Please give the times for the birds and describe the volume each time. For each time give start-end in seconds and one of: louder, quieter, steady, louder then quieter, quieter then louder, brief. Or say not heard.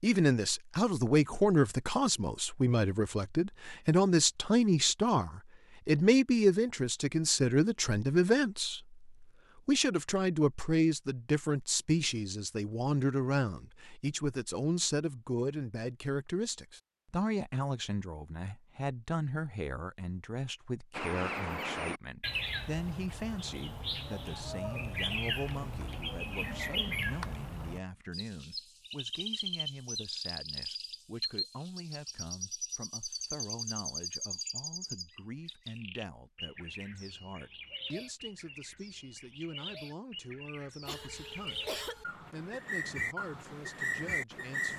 20.9-44.7 quieter then louder.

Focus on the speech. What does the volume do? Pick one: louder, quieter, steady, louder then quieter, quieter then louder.
quieter.